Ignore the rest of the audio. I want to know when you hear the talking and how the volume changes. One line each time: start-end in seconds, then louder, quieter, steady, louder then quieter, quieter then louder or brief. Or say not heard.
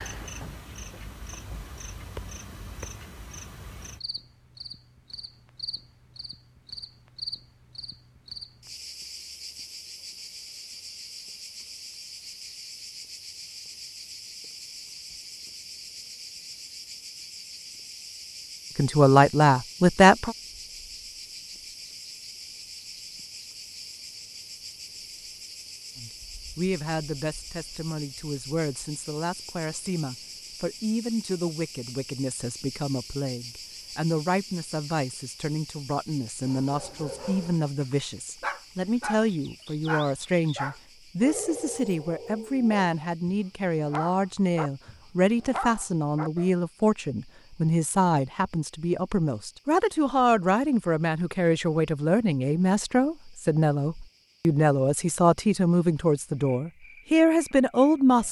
18.8-20.4 brief
25.9-58.2 louder.